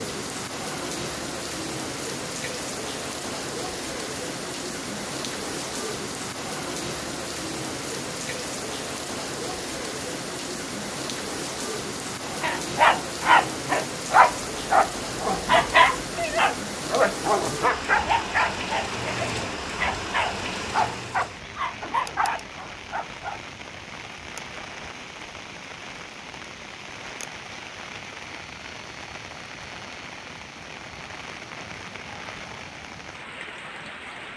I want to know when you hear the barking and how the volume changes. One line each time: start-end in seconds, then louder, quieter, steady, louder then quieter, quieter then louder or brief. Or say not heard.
12.4-23.4 quieter.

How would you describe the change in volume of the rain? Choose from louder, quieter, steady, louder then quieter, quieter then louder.
quieter.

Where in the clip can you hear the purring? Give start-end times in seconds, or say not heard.
not heard.